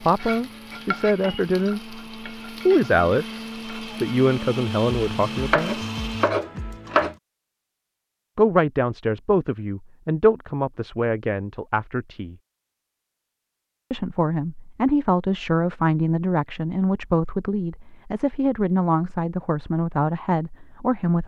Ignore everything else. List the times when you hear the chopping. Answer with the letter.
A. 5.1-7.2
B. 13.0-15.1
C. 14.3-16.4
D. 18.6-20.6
A.